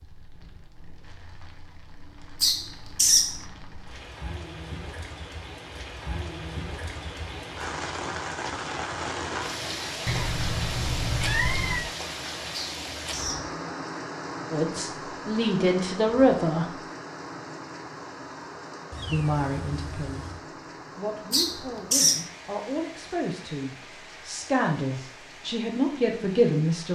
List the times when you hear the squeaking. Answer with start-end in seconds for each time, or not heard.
2.4-3.4, 12.5-13.6, 21.3-22.2.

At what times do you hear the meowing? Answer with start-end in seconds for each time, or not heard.
10.1-11.9, 18.9-20.4.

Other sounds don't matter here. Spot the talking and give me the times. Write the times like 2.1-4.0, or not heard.
14.5-16.7, 19.1-20.4, 20.9-26.9.